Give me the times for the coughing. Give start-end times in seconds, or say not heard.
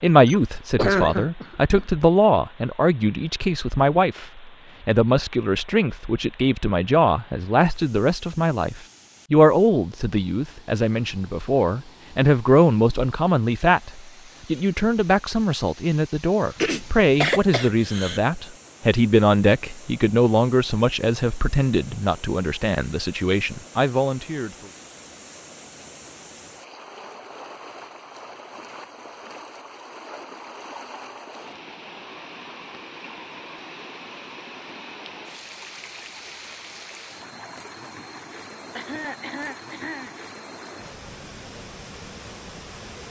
0.2-1.9, 16.6-18.2, 38.8-40.1.